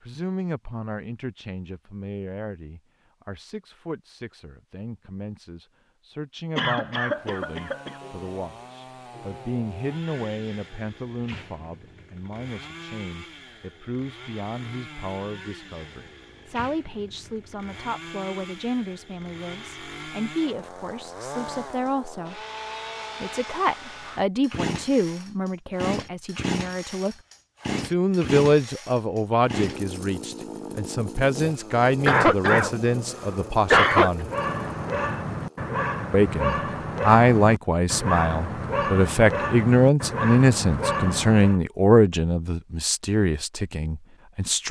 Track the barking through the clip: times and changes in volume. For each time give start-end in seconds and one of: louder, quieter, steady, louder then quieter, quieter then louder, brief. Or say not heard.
34.2-41.6 steady.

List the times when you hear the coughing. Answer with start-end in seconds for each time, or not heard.
6.5-7.9, 32.0-34.1.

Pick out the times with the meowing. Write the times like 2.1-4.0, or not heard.
not heard.